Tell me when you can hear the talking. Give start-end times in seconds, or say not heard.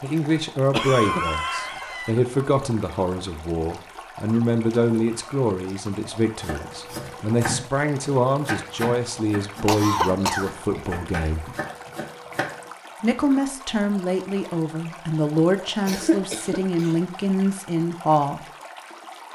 0.0-11.5, 13.0-18.4.